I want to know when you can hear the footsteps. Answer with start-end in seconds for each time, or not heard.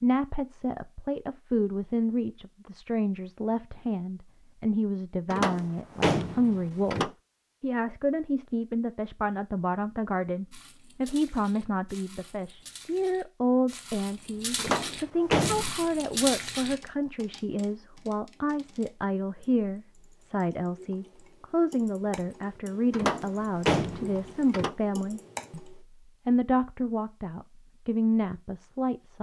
10.5-16.8.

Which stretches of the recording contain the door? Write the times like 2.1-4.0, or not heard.
5.3-7.1, 14.6-15.8, 22.9-24.8.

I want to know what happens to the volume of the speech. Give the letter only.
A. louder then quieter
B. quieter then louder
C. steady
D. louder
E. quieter
C.